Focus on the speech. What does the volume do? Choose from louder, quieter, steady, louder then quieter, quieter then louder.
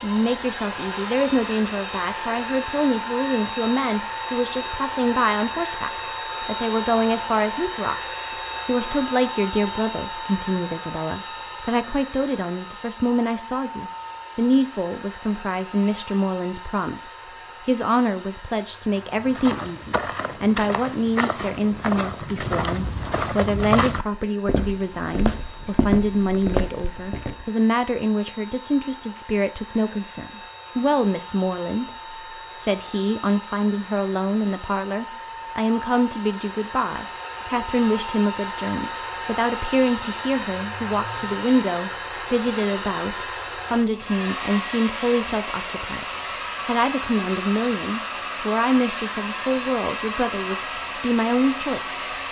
steady.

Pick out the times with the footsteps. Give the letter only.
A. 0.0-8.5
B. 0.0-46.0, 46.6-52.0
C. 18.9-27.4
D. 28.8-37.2
C.